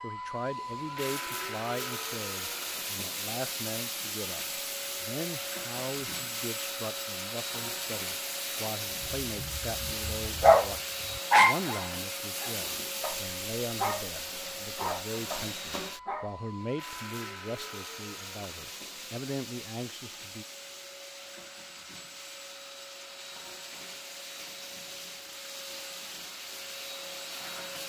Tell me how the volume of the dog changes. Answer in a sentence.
The volume of the dog goes down, then up.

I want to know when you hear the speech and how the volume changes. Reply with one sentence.
The speech can be heard from 0.0 to 20.4 s, at a steady volume.